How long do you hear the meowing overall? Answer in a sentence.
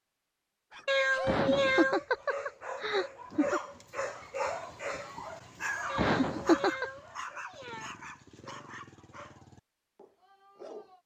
The meowing can be heard for 3 seconds in total.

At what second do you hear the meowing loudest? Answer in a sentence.
The loudest moment of the meowing is at 2 seconds.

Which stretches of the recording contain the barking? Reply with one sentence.
You can hear the barking from 0.7 to 11.0 s.